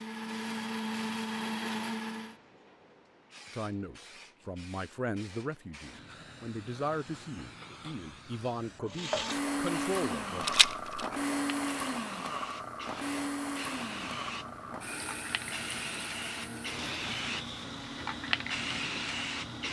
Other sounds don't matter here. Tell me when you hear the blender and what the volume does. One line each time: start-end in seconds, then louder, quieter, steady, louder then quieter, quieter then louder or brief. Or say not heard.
0.0-2.4 brief
8.8-19.6 quieter.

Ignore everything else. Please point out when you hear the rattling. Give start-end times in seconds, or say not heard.
10.4-11.1.